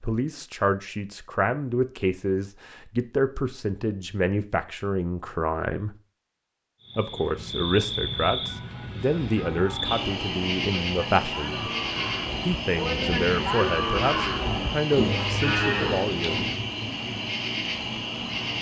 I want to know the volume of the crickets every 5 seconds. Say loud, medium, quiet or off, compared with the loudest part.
off, loud, loud, loud.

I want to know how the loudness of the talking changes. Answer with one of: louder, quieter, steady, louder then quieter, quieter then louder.
steady.